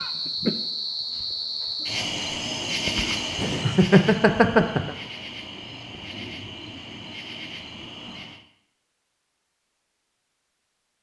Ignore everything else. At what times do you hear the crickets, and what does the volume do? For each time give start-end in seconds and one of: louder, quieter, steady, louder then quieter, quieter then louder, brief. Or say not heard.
0.0-8.4 quieter.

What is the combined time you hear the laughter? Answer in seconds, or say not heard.
2 s.